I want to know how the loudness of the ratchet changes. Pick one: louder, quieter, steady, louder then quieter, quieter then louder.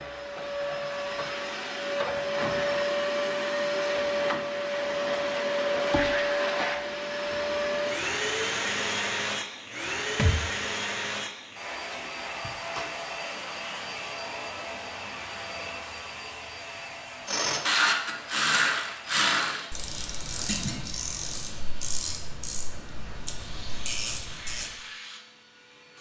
quieter.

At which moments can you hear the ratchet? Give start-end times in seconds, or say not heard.
17.2-24.7.